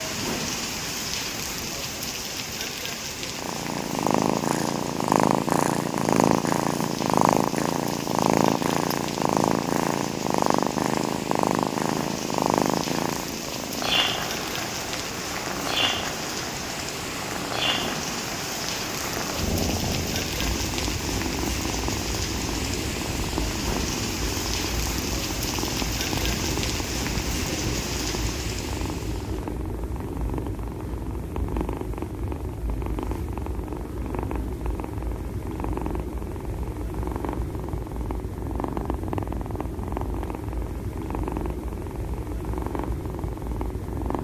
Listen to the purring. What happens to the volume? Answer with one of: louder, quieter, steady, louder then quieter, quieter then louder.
quieter.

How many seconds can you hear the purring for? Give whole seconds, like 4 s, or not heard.
41 s.